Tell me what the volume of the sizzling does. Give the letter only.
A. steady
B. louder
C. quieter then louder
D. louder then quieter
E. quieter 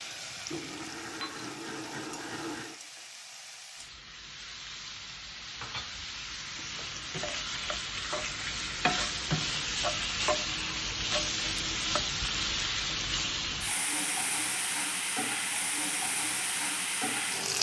B.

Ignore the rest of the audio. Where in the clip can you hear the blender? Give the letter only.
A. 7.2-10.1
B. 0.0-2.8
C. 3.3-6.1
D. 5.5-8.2
B.